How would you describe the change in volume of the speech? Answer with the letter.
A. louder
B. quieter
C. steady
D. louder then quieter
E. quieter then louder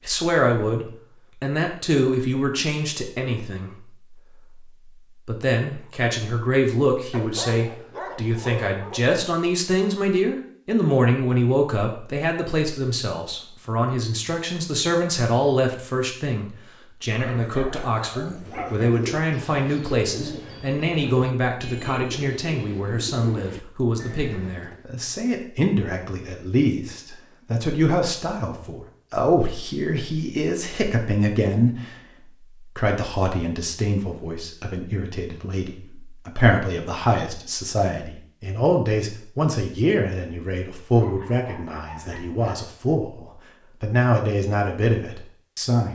C.